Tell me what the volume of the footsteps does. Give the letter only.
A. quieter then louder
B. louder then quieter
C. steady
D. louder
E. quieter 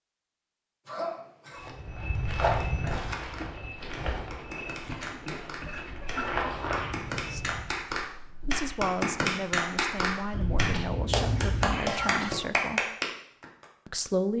A.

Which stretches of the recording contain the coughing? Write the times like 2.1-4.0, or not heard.
0.8-1.6, 4.8-6.7, 10.3-12.3.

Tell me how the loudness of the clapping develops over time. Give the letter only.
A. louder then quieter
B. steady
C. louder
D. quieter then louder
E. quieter
C.